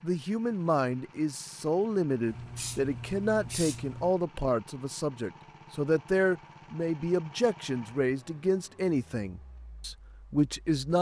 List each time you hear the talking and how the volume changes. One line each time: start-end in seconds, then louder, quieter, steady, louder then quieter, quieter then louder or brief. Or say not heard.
0.0-10.9 steady.